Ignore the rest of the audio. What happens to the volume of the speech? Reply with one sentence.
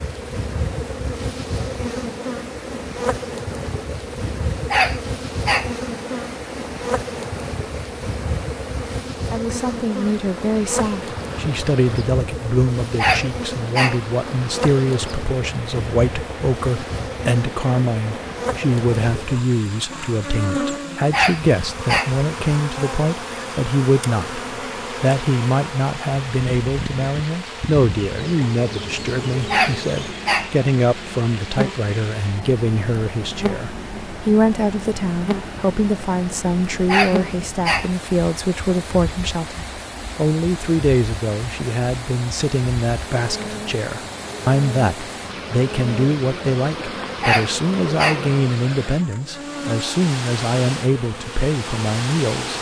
The loudness of the speech stays about the same.